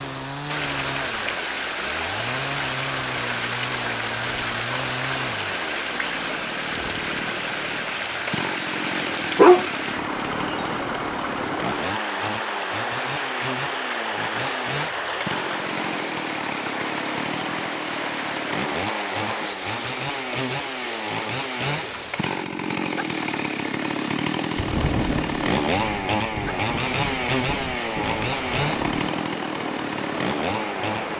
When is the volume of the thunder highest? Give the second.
25 s.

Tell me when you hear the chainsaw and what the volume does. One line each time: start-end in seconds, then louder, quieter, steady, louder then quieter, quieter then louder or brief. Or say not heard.
0.0-31.1 louder.